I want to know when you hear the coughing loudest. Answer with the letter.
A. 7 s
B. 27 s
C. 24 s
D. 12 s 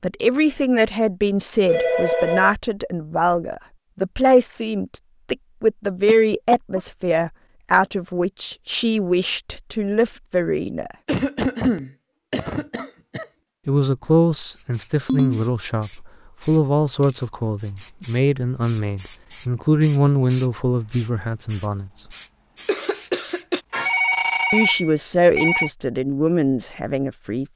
D.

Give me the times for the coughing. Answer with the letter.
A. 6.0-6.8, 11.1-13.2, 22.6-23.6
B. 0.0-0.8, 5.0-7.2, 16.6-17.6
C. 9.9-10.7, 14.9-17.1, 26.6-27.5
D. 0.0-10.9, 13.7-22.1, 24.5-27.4
A.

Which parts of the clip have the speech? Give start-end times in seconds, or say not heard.
0.0-10.9, 13.7-22.1, 24.5-27.4.